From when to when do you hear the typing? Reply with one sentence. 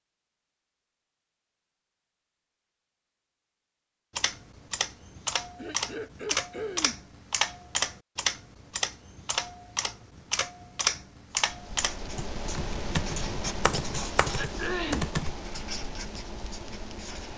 The typing can be heard from 4.2 to 15.3 s.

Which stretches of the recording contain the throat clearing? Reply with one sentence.
The throat clearing can be heard from 5.5 to 7.0 s and from 14.3 to 15.1 s.